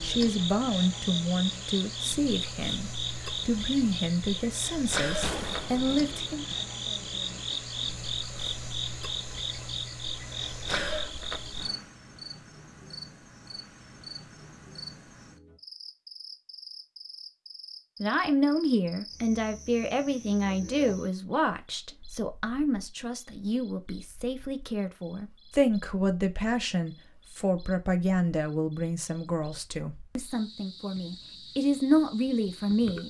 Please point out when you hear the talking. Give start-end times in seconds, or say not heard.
0.0-6.5, 18.0-33.0.